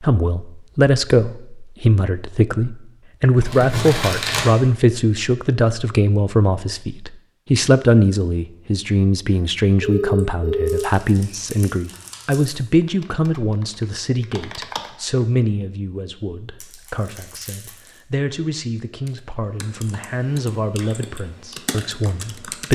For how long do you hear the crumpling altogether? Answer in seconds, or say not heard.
4 s.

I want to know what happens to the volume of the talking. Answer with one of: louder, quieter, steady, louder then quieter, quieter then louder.
quieter.